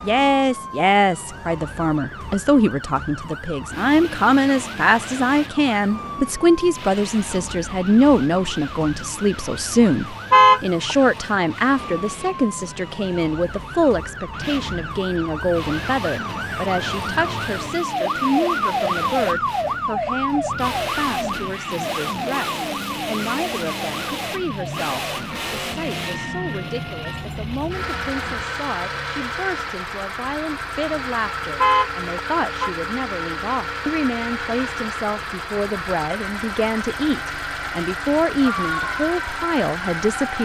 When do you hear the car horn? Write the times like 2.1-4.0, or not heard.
10.3-10.9, 31.6-32.7.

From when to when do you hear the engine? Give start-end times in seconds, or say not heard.
3.7-40.3.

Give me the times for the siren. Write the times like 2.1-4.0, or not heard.
0.0-28.4, 38.4-40.3.